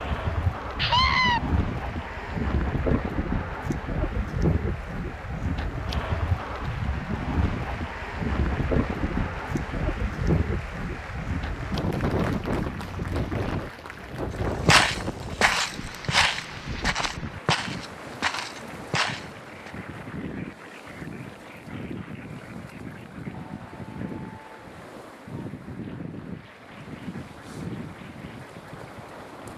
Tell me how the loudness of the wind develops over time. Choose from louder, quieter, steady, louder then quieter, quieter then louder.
quieter.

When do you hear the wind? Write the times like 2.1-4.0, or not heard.
0.0-29.5.